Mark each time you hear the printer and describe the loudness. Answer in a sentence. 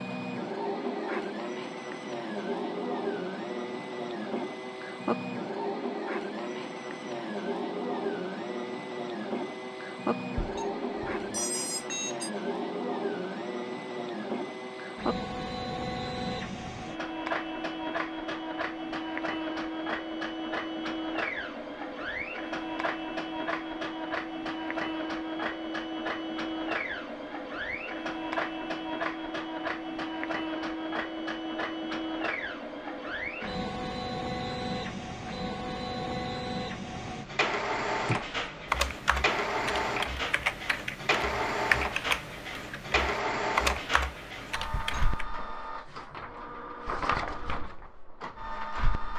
You can hear the printer from 0.0 to 49.1 s, at a steady volume.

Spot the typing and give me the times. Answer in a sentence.
You can hear the typing from 38.0 to 45.2 s.